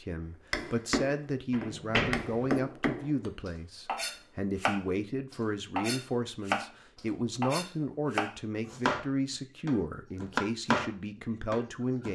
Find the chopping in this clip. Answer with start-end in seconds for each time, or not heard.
0.5-9.1, 9.7-10.9, 11.5-12.1.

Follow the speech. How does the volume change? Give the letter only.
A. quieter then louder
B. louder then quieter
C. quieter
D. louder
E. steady
E.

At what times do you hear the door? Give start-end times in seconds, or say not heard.
1.5-2.6.